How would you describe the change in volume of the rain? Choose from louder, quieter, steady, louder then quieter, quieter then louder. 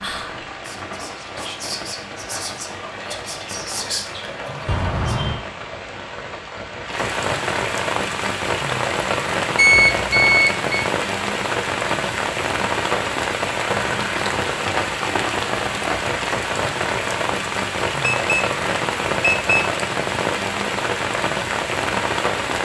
louder.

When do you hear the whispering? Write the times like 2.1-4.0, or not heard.
0.0-5.3.